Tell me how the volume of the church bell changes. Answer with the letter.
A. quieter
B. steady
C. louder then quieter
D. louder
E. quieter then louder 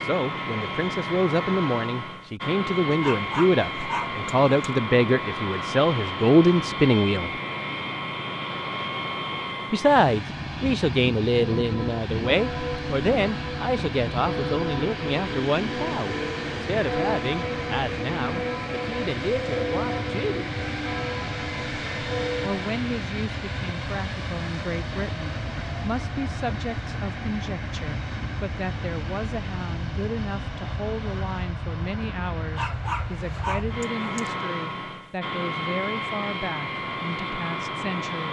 B.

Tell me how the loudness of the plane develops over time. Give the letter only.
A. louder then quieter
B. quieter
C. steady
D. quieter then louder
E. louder
C.